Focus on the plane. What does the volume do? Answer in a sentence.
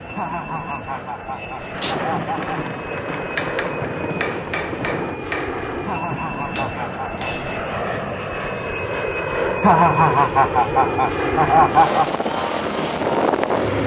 The loudness of the plane goes up.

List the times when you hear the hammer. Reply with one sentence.
You can hear the hammer from 1.8 to 7.7 s.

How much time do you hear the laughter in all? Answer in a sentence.
The laughter can be heard for 6 seconds in total.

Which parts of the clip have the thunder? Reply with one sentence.
The thunder can be heard from 1.7 to 5.2 s.